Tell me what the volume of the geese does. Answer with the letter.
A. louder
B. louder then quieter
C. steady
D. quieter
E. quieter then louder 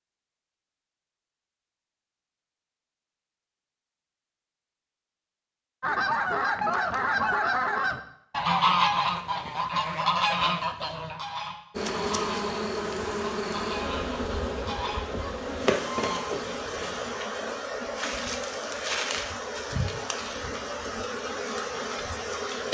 D.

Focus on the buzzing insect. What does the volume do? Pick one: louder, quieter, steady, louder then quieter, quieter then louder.
steady.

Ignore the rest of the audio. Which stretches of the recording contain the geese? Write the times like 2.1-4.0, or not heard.
5.8-17.2.